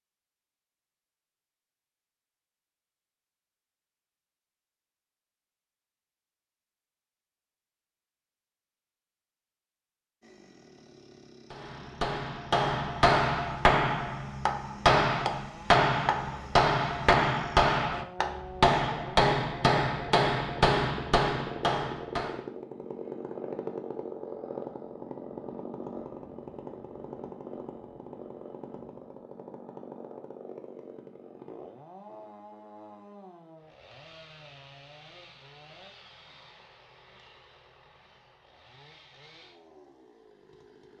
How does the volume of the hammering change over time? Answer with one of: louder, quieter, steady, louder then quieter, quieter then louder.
steady.